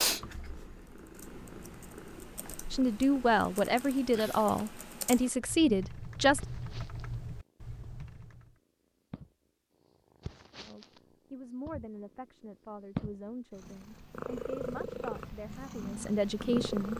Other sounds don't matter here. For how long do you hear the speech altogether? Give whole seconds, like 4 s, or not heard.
10 s.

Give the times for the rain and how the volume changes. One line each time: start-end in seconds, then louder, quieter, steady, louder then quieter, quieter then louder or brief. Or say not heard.
not heard.